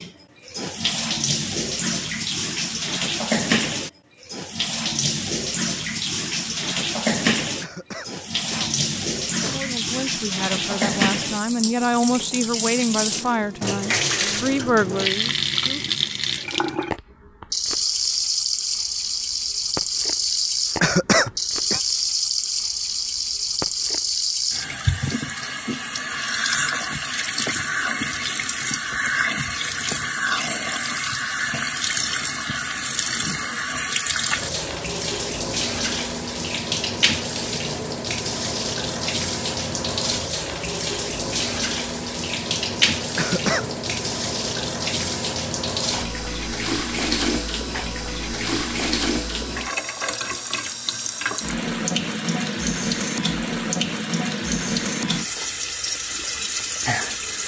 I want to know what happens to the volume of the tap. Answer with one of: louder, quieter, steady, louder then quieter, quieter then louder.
steady.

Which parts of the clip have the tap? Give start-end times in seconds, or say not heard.
0.0-57.4.